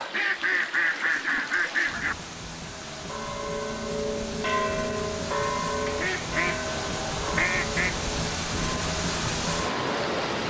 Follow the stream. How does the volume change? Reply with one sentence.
The loudness of the stream goes up.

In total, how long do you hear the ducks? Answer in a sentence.
The ducks can be heard for 4 seconds in total.